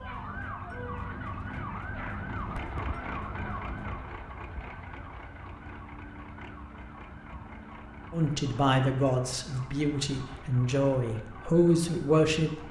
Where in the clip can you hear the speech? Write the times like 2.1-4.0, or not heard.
8.1-12.6.